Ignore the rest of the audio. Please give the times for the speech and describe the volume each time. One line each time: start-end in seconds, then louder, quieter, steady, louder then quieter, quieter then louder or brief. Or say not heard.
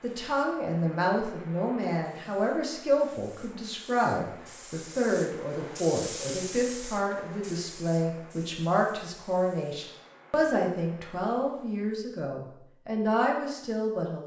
0.0-14.2 steady.